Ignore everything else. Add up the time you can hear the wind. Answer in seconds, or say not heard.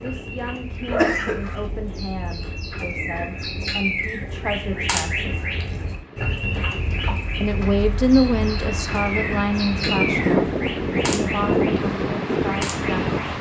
13 s.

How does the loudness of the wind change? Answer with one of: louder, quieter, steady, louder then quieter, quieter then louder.
louder.